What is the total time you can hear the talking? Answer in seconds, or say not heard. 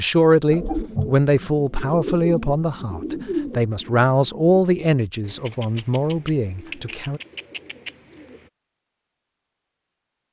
7 s.